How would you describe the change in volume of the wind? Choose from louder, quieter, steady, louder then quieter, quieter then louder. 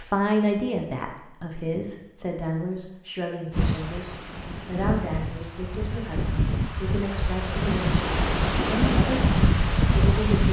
louder.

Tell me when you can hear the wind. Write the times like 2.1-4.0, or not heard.
3.5-10.4.